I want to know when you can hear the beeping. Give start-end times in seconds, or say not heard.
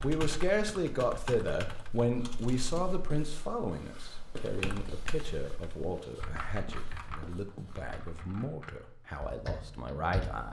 not heard.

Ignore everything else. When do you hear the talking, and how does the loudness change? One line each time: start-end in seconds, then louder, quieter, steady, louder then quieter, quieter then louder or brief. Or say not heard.
0.0-10.4 quieter.